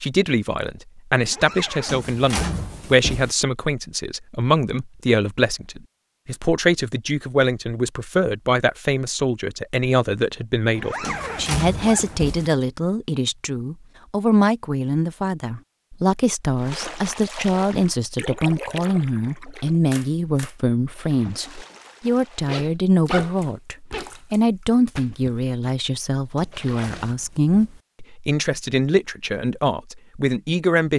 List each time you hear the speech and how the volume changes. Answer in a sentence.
The speech can be heard from 0.0 to 30.9 s, at a steady volume.